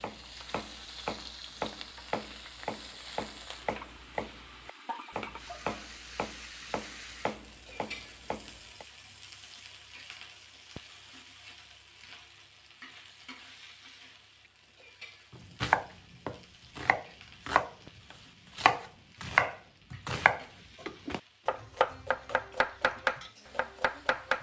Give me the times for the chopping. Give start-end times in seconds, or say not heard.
0.0-8.8, 15.3-24.3.